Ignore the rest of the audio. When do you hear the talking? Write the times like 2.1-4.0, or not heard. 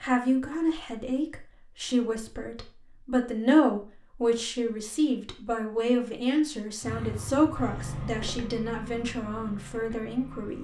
0.0-10.5.